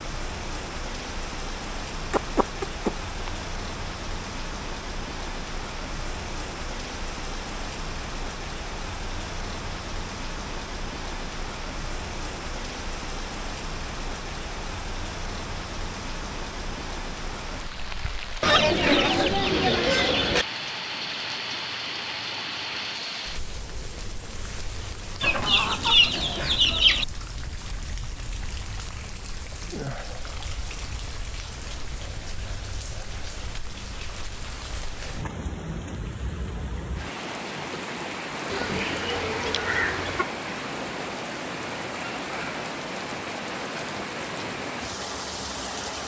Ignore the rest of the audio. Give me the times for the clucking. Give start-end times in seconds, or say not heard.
2.1-3.3, 18.4-20.4, 25.2-27.1, 38.5-40.3.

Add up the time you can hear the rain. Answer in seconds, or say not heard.
46 s.